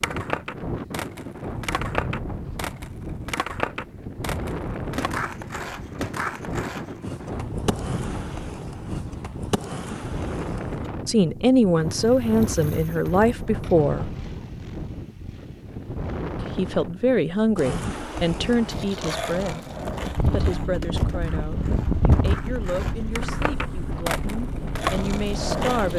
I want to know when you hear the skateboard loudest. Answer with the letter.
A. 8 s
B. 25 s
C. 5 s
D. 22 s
B.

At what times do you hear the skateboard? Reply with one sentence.
The skateboard can be heard from 0.0 to 10.9 s and from 17.6 to 25.9 s.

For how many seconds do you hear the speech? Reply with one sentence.
The speech can be heard for 12 seconds in total.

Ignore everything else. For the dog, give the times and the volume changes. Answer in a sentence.
The dog can't be heard in this clip.